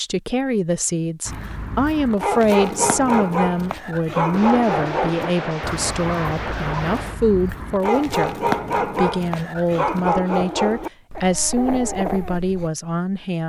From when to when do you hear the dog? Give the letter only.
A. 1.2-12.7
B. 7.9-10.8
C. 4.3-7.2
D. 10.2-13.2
A.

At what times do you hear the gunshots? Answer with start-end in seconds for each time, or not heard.
4.3-7.2.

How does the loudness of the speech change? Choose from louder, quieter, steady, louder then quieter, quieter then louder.
steady.